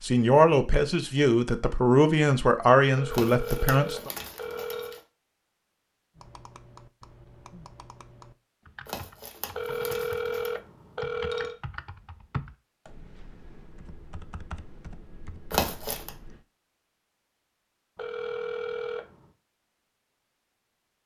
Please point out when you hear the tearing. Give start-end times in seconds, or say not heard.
3.1-5.0, 8.8-10.6, 15.5-16.1.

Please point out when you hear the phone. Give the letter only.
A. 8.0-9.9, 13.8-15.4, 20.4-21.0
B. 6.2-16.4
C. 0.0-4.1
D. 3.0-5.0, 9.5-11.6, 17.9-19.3
D.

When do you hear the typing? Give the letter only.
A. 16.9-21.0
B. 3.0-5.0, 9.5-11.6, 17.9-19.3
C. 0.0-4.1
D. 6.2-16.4
D.